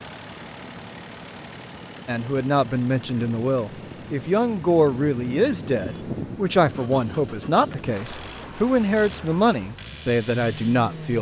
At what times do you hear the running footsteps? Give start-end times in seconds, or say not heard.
not heard.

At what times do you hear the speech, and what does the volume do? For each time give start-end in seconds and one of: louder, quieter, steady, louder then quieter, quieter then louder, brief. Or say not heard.
2.0-11.1 steady.